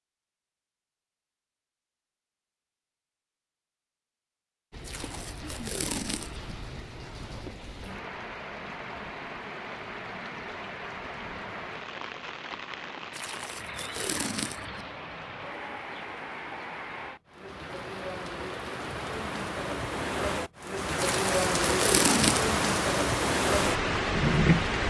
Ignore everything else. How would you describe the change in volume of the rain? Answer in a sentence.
The volume of the rain goes up.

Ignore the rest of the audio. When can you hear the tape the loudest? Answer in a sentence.
The volume of the tape peaks at 22 seconds.